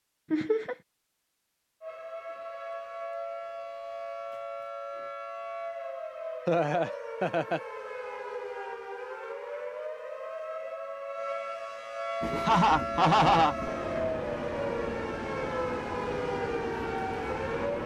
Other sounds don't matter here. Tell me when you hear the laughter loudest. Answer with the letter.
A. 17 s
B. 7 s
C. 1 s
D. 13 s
D.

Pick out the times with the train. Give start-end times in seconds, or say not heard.
12.2-17.8.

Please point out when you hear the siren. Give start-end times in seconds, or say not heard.
1.8-17.8.